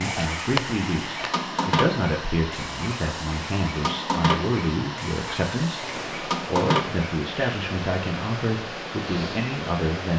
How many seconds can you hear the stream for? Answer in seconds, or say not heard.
10 s.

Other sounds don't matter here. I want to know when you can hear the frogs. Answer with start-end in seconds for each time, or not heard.
0.0-7.5.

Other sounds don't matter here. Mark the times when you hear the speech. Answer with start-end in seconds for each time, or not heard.
0.0-10.1.